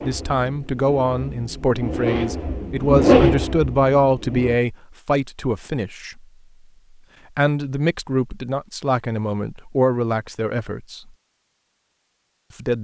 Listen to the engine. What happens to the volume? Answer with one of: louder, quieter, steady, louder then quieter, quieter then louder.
louder then quieter.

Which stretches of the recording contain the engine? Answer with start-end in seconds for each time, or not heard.
0.0-4.6.